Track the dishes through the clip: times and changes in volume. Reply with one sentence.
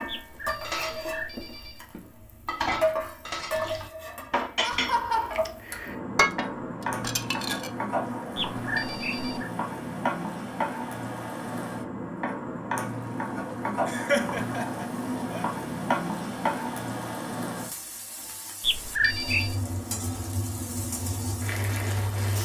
You can hear the dishes from 0.0 to 7.7 s, getting louder.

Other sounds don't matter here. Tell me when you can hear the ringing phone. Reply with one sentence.
You can hear the ringing phone from 0.1 to 1.9 s, from 8.3 to 9.5 s and from 18.6 to 19.6 s.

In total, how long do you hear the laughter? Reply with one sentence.
The laughter can be heard for 2 seconds in total.